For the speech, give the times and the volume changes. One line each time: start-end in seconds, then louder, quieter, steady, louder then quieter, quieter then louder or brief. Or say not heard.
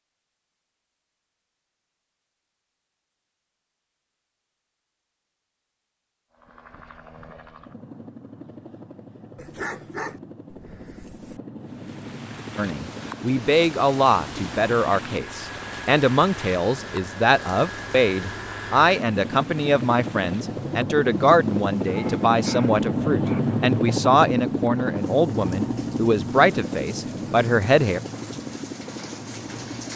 12.6-28.0 steady.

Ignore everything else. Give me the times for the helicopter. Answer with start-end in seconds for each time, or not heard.
6.3-29.9.